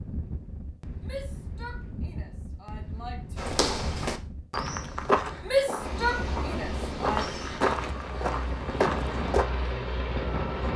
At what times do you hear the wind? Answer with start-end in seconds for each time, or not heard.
0.0-10.7.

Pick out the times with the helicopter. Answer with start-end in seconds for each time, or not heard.
5.8-10.7.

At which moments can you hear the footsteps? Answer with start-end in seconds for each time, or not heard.
3.4-9.4.